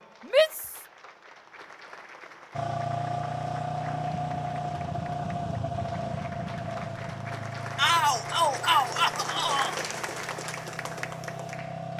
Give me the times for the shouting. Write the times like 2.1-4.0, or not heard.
0.2-0.8, 7.8-9.8.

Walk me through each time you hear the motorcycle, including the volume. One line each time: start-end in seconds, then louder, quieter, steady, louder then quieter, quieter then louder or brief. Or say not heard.
2.5-11.9 quieter.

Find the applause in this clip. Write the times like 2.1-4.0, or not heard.
0.0-11.9.